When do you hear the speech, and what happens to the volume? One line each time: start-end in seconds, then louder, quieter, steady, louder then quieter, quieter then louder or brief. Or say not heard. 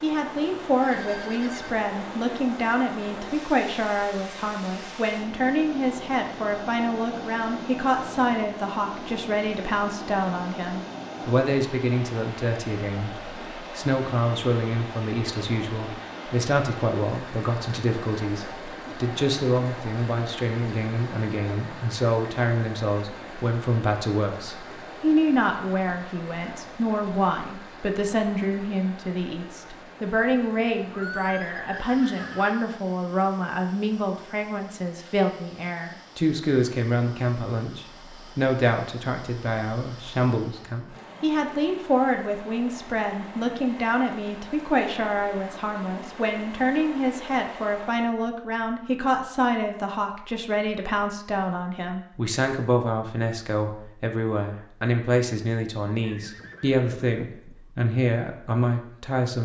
0.0-59.4 steady.